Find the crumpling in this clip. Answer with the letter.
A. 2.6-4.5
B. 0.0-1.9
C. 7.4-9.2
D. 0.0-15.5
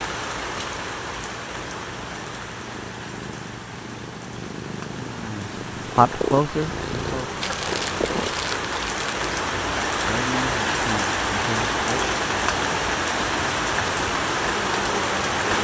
C.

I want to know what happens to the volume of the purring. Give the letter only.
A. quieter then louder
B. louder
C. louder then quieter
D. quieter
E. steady
B.